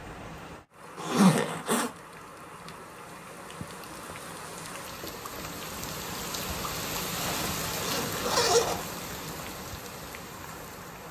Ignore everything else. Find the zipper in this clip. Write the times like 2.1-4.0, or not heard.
0.9-1.9, 7.2-8.8.